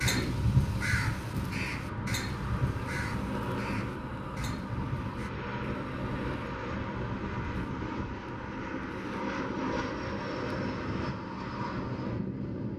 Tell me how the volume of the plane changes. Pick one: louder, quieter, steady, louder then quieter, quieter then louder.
steady.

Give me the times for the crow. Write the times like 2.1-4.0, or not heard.
0.0-5.3.